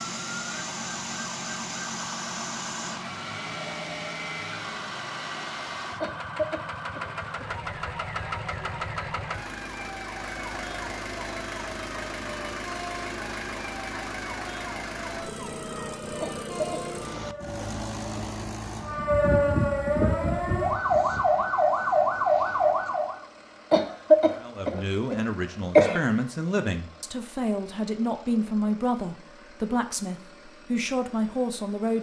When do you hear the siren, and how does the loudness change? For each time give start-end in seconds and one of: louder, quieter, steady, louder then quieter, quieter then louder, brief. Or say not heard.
0.1-23.2 louder.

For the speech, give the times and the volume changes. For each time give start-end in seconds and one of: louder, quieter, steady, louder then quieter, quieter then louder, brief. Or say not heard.
24.4-31.9 steady.